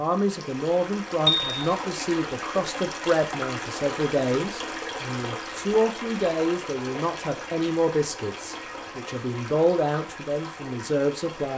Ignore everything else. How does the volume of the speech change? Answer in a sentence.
The loudness of the speech stays about the same.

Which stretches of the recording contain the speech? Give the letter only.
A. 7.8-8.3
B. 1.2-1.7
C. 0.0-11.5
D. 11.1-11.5
C.